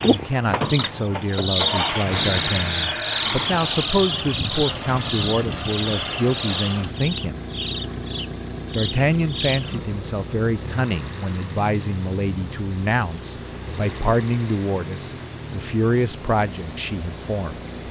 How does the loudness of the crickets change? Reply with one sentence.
The loudness of the crickets goes down, then up.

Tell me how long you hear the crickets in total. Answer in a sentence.
You can hear the crickets for 18 seconds altogether.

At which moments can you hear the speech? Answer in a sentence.
You can hear the speech from 0.0 to 7.4 s and from 8.7 to 17.6 s.